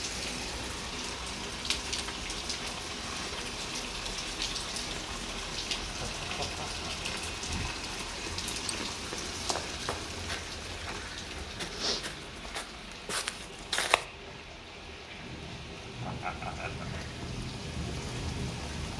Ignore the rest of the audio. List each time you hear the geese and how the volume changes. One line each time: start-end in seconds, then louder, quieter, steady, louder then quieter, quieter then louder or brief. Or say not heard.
not heard.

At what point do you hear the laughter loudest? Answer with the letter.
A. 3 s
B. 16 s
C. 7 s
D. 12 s
B.